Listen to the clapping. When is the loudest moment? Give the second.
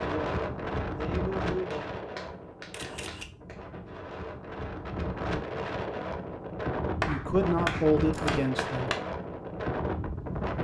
7 s.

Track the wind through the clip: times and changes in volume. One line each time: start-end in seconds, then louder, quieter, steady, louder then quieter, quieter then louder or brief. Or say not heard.
0.0-10.5 quieter then louder.